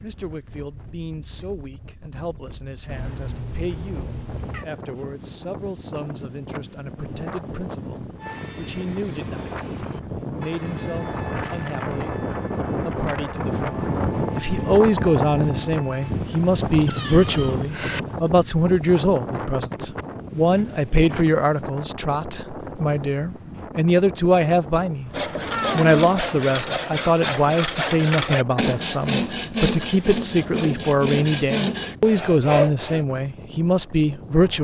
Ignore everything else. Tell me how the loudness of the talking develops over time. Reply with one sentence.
The volume of the talking goes up.